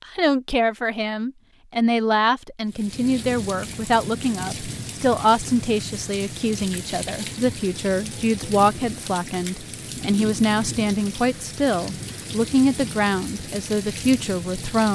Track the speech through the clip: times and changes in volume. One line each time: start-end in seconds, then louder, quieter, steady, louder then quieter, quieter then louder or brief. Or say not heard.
0.1-14.8 steady.